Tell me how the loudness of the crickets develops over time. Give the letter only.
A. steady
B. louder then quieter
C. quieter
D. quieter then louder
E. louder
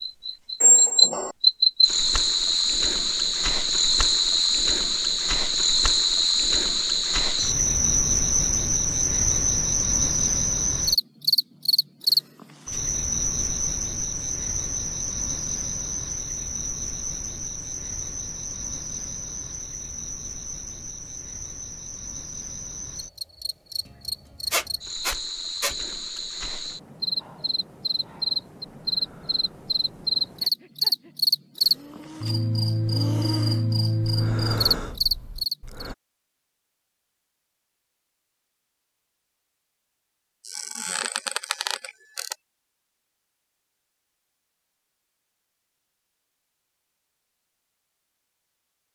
D.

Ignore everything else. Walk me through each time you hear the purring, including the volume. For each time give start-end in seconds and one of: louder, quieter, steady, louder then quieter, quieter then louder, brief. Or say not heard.
not heard.